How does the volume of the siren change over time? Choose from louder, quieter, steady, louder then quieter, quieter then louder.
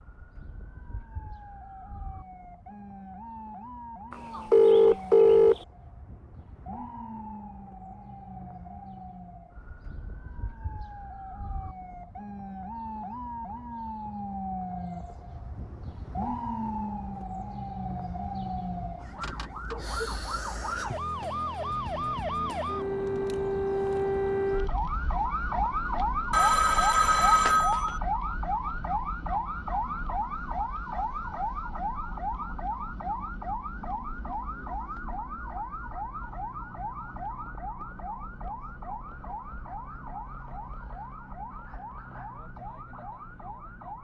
louder then quieter.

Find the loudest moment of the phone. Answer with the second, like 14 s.
5 s.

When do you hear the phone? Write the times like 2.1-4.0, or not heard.
4.1-5.6, 26.3-28.0.